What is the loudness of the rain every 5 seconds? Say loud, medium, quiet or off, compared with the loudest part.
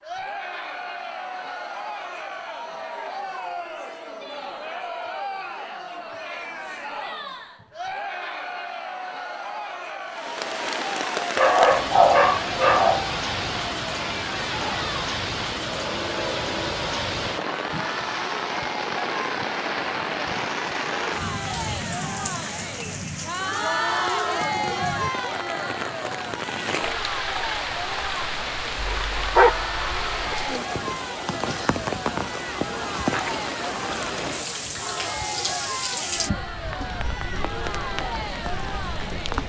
off, off, loud, loud, loud, loud, loud, loud.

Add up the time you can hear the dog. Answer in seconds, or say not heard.
3 s.